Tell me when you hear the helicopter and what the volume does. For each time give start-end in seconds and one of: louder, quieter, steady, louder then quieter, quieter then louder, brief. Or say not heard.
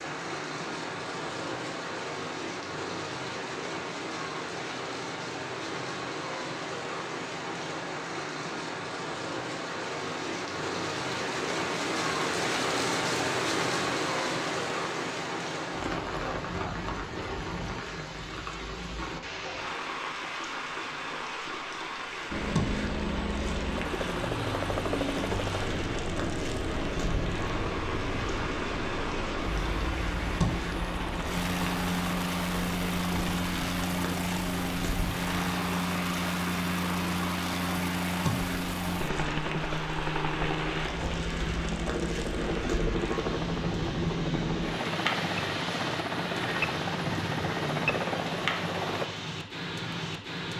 22.3-49.1 steady.